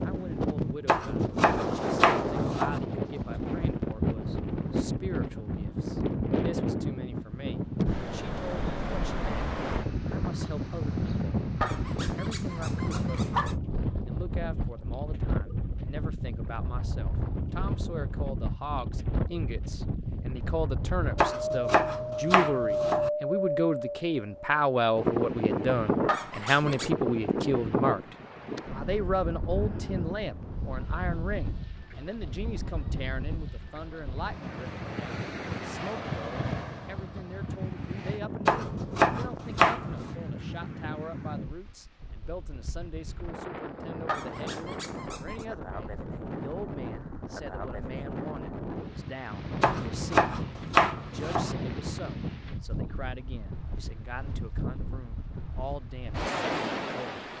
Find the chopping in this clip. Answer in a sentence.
You can hear the chopping from 0.8 to 2.8 s, from 21.1 to 23.1 s, from 38.5 to 40.1 s and from 49.6 to 51.5 s.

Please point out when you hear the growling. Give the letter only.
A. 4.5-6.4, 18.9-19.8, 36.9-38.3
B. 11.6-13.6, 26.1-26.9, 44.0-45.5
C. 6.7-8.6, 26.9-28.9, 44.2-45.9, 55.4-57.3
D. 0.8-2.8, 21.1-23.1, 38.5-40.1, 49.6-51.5
B.